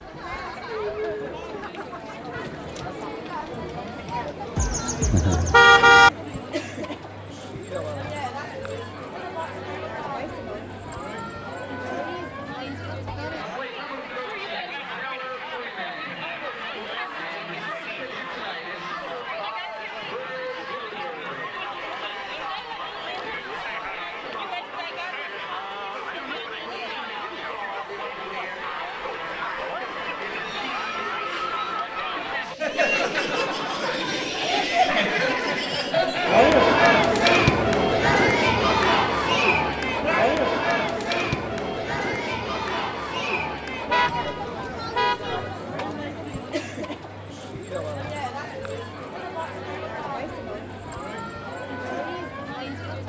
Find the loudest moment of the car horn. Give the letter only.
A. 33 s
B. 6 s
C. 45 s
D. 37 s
B.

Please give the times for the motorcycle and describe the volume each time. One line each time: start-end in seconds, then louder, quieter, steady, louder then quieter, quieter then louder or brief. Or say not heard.
not heard.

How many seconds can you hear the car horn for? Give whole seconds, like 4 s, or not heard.
3 s.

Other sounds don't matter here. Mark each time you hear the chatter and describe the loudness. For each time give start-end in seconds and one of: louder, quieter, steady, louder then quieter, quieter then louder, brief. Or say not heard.
0.0-53.0 louder then quieter.